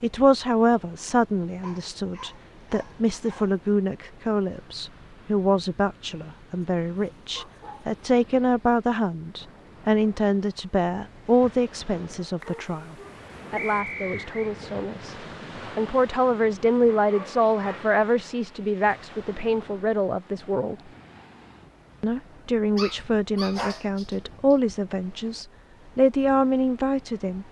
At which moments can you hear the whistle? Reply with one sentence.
The whistle can be heard from 13.6 to 14.5 s.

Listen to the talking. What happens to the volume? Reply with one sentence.
The loudness of the talking stays about the same.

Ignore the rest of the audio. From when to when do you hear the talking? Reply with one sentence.
You can hear the talking from 0.0 to 15.2 s, from 15.8 to 20.8 s and from 22.0 to 27.4 s.